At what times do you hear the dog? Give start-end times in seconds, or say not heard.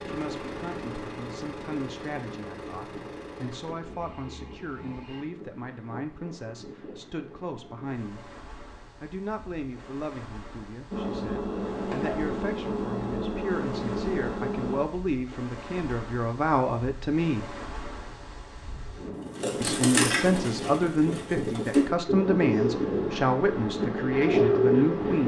not heard.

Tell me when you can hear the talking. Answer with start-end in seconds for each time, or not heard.
0.0-8.3, 9.0-17.6, 19.6-25.2.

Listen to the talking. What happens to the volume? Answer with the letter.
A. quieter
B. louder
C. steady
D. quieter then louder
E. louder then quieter
B.